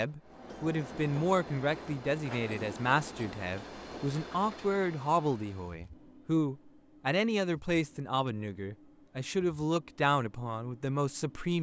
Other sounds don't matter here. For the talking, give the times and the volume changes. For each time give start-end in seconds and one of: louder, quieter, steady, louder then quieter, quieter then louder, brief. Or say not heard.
0.0-11.5 steady.